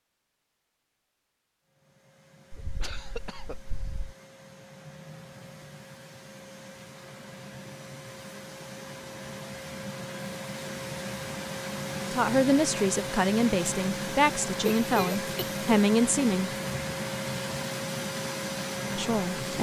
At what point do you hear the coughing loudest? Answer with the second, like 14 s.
15 s.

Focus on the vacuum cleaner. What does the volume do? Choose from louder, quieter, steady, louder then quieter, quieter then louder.
louder.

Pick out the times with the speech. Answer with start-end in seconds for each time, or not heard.
12.1-16.5, 18.9-19.5.